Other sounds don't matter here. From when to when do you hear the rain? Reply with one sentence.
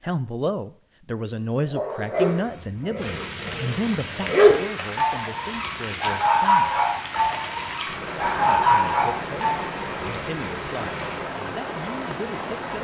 You can hear the rain from 3.0 to 12.7 s.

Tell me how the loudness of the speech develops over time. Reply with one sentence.
The loudness of the speech goes down.